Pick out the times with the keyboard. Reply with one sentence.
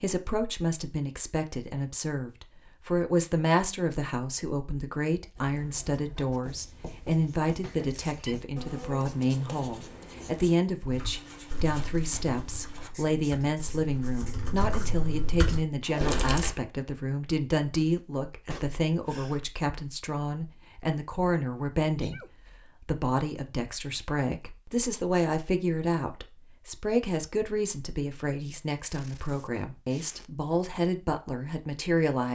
The keyboard can be heard from 10.8 to 16.5 s.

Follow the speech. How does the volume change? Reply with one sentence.
The loudness of the speech stays about the same.